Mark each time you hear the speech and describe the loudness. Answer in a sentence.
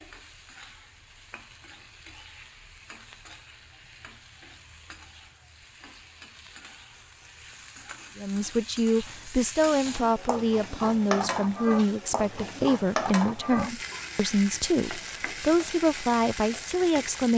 The speech can be heard from 8.2 to 17.3 s, at a steady volume.